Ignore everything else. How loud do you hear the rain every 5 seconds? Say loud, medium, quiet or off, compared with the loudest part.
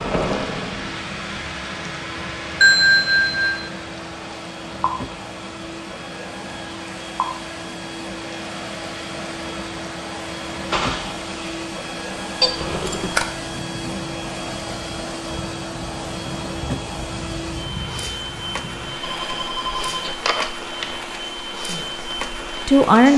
loud, medium, loud, medium, medium.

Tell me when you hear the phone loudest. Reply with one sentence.
The volume of the phone peaks at 3 seconds.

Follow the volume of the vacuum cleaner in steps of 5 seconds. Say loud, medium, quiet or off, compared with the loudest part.
medium, loud, loud, loud, loud.